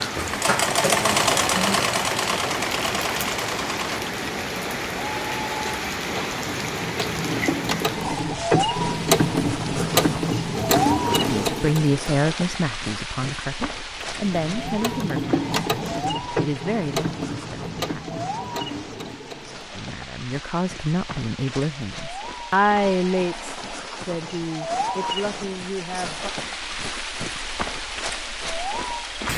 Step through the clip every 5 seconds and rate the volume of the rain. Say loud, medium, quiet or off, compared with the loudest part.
loud, loud, loud, medium, medium, loud.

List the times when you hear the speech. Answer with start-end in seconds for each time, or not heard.
11.2-18.2, 19.8-26.3.